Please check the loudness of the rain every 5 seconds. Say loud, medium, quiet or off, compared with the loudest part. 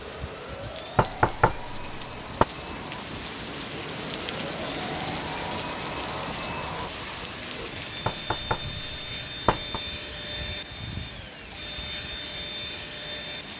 loud, loud, medium.